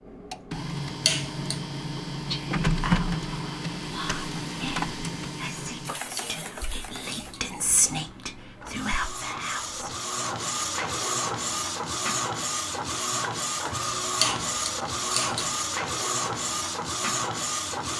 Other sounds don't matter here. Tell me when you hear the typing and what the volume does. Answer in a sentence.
You can't hear the typing here.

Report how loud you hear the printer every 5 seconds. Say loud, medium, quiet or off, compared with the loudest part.
loud, medium, loud, loud.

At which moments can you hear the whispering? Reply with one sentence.
The whispering can be heard from 2.1 to 9.9 s.